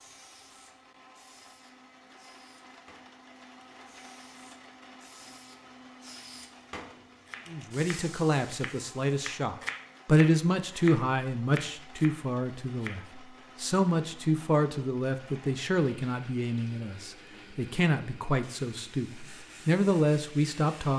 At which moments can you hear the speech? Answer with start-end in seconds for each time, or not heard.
7.5-20.9.